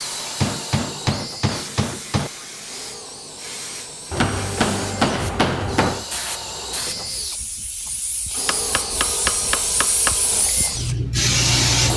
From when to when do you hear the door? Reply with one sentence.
You can't hear the door here.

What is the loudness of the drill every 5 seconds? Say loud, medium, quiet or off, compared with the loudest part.
medium, loud, loud.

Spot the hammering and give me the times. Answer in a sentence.
The hammering can be heard from 0.4 to 2.3 s, from 4.1 to 6.0 s and from 8.3 to 10.2 s.